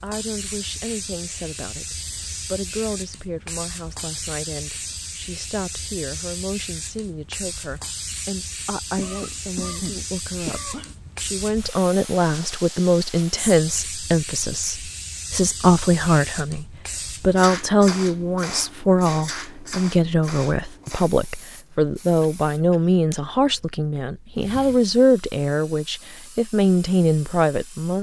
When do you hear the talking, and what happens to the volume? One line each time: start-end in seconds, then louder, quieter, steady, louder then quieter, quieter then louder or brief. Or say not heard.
0.0-27.9 louder.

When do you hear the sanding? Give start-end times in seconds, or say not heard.
not heard.